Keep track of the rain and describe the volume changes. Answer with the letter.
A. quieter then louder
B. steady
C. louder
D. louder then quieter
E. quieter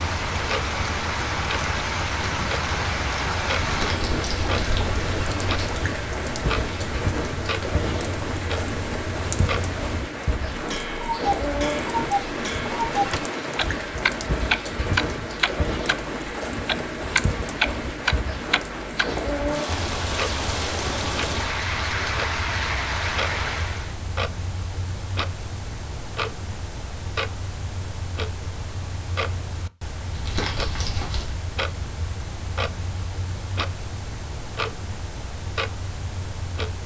B.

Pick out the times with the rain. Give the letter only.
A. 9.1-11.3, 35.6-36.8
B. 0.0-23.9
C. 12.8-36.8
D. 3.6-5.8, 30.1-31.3
B.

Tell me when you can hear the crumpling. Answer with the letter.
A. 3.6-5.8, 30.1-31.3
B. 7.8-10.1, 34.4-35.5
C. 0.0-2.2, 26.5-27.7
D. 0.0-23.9
A.